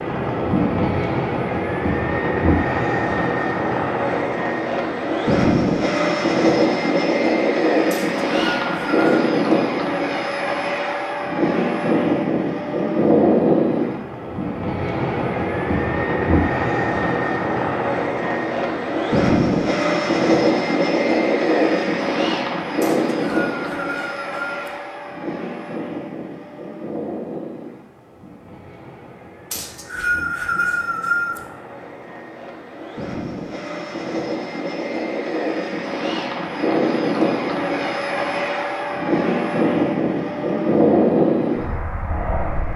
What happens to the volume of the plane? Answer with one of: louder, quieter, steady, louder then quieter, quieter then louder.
quieter then louder.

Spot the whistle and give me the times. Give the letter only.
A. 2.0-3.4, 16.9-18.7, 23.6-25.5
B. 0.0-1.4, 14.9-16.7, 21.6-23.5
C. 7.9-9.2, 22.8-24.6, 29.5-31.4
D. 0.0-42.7
C.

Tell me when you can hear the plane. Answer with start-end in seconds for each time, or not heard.
0.0-42.7.